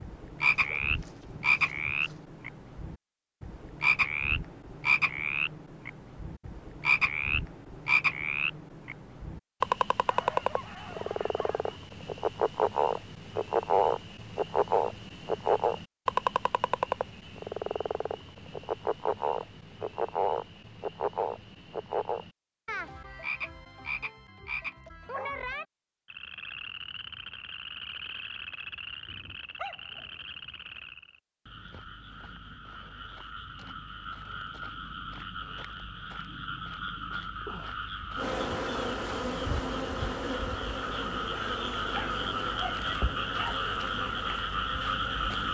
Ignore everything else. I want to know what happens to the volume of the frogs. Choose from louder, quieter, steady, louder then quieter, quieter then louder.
quieter then louder.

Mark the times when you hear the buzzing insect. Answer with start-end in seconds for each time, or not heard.
38.1-45.4.